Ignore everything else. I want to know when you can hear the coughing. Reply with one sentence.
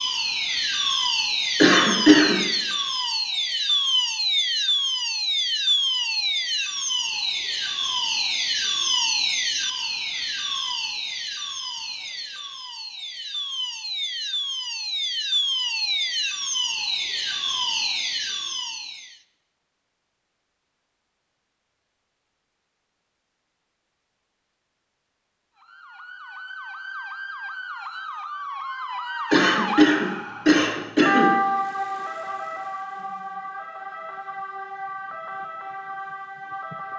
The coughing can be heard from 1.6 to 2.4 s and from 29.3 to 31.3 s.